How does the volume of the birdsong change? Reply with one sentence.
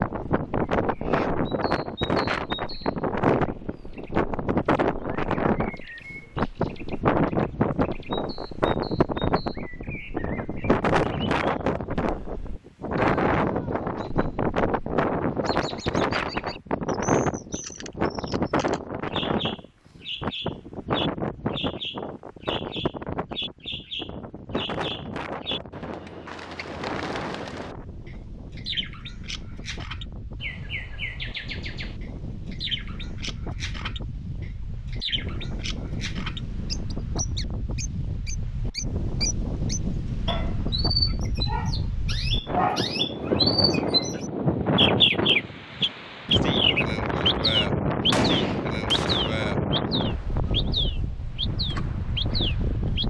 The volume of the birdsong goes up.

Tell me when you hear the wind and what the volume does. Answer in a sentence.
The wind can be heard from 0.0 to 53.0 s, getting quieter then louder.